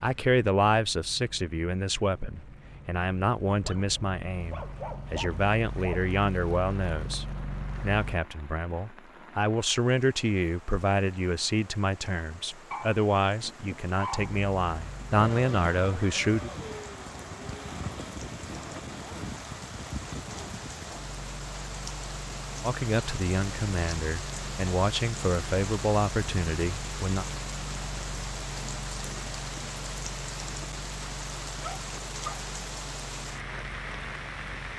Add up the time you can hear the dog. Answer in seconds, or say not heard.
5 s.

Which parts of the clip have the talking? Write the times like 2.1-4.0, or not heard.
0.0-16.5, 22.6-27.2.